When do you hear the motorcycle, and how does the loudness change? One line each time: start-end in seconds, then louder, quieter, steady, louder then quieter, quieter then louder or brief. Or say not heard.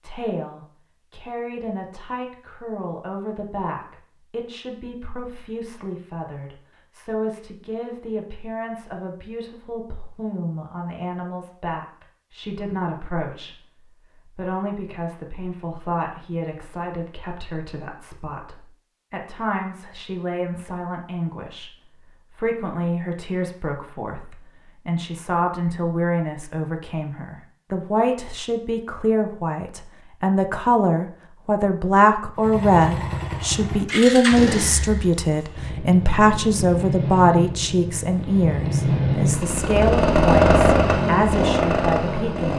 32.4-42.5 quieter then louder.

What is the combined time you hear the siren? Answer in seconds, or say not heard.
not heard.